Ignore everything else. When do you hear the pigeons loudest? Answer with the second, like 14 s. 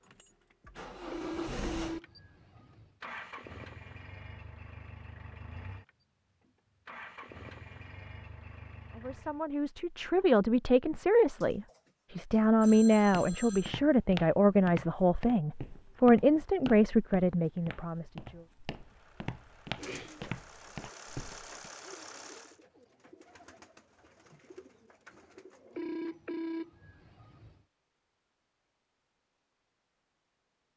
20 s.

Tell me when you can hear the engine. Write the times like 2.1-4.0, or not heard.
0.0-9.4, 18.8-22.6.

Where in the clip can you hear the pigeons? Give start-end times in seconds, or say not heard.
19.8-25.9.